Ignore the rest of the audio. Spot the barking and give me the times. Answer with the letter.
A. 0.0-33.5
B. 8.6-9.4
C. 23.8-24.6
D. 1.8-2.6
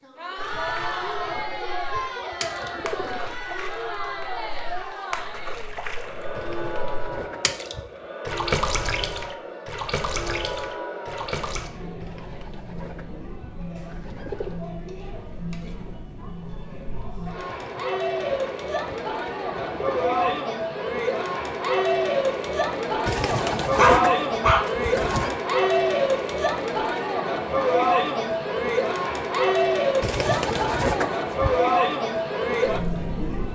C.